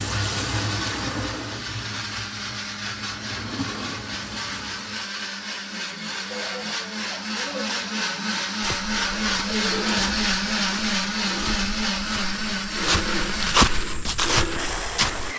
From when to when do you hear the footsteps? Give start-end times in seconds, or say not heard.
8.6-15.3.